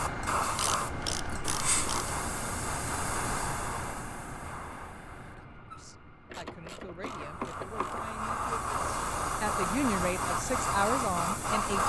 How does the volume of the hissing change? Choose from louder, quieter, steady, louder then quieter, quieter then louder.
quieter then louder.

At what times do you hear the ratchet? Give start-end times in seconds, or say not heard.
0.6-2.1, 6.3-8.1.